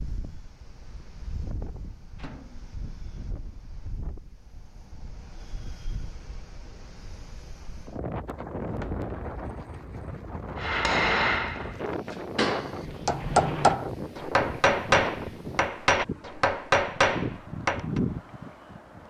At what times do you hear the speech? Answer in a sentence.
You can't hear the speech here.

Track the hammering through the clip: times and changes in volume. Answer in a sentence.
The hammering can be heard from 10.6 to 18.0 s, at a steady volume.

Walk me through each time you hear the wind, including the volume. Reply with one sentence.
The wind can be heard from 0.0 to 19.0 s, getting louder.